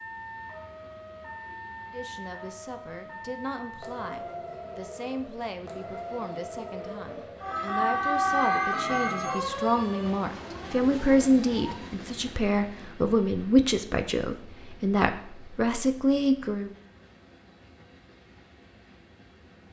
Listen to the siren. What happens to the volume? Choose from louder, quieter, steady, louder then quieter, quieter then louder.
louder then quieter.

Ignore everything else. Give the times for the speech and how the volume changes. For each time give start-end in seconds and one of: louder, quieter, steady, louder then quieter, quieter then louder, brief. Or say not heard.
1.9-16.7 louder.